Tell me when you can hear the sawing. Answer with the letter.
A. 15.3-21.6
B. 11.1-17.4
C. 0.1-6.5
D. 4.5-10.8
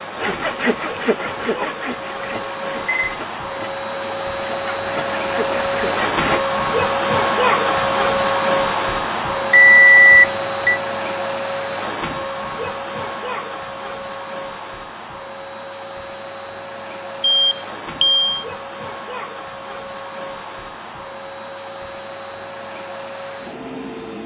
C.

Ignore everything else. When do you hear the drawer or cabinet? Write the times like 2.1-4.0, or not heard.
not heard.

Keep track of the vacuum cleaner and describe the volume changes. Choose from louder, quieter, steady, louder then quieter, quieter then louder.
louder then quieter.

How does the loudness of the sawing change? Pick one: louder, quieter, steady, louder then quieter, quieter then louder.
quieter then louder.